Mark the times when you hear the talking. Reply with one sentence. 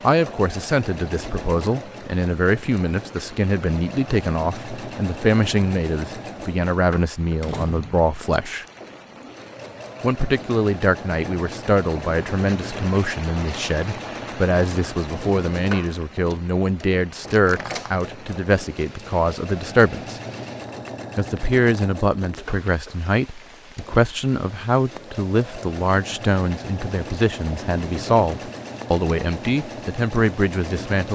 The talking can be heard from 0.0 to 8.7 s, from 10.0 to 20.2 s and from 21.1 to 31.0 s.